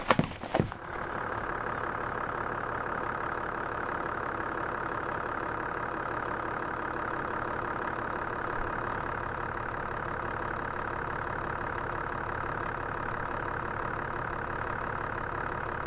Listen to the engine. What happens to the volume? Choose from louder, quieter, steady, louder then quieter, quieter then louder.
steady.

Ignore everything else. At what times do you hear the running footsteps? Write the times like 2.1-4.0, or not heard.
0.0-1.6.